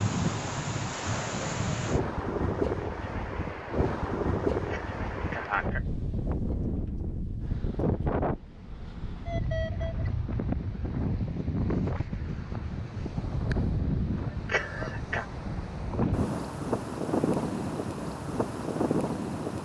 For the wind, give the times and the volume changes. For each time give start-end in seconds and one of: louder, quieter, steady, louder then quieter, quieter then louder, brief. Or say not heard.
0.0-19.6 steady.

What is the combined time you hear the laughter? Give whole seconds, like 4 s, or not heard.
2 s.